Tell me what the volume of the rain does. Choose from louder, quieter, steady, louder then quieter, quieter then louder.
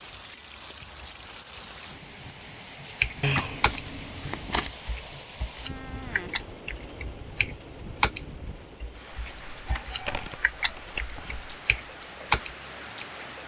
steady.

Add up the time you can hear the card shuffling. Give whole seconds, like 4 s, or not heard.
4 s.